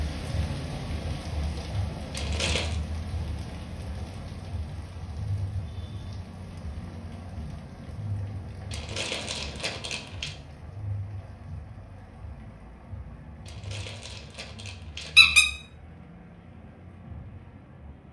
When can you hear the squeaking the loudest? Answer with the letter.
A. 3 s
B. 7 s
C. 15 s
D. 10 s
C.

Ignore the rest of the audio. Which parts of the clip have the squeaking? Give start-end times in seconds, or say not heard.
2.1-2.8, 8.7-10.3, 13.4-15.4.